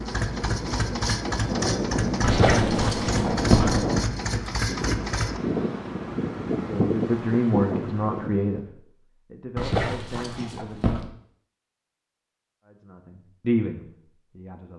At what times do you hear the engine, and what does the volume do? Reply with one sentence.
You can hear the engine from 0.0 to 5.4 s, at a steady volume.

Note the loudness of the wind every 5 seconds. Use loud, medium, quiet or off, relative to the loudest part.
loud, loud, off.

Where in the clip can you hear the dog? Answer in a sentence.
You can hear the dog from 2.2 to 3.8 s and from 9.6 to 11.0 s.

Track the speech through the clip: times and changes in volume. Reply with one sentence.
The speech can be heard from 6.6 to 11.1 s, getting quieter; and briefly from 12.7 to 14.7 s.